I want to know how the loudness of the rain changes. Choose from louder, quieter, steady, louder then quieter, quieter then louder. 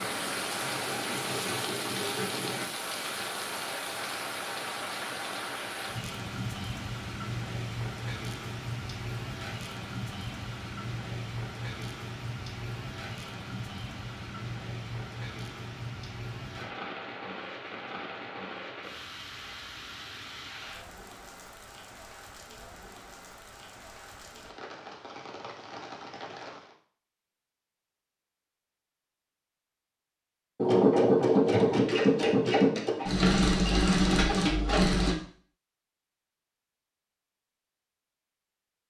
quieter.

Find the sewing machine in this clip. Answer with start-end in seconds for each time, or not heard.
0.0-2.6, 30.6-35.1.